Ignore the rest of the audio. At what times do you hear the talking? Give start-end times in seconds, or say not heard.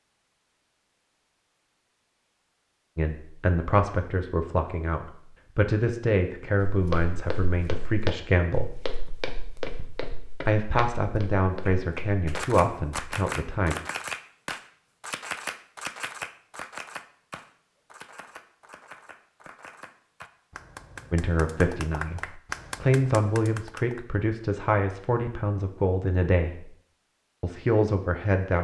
3.0-8.8, 10.4-13.8, 21.1-26.7, 27.4-28.5.